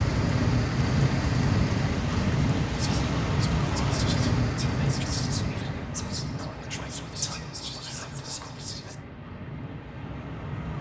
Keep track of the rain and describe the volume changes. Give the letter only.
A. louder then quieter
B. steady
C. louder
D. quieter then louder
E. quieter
E.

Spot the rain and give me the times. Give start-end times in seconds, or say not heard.
0.0-10.7.